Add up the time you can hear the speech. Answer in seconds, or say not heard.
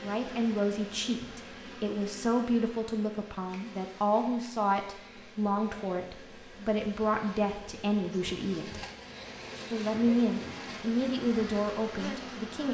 12 s.